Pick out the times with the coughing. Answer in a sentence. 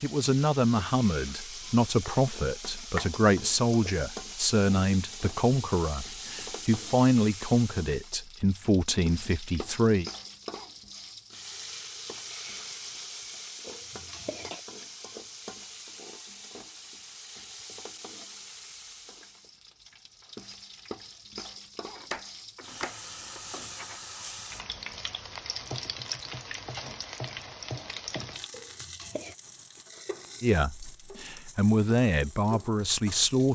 The coughing can be heard from 13.7 to 14.6 s and from 28.5 to 29.4 s.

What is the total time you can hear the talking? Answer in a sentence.
The talking can be heard for 13 seconds in total.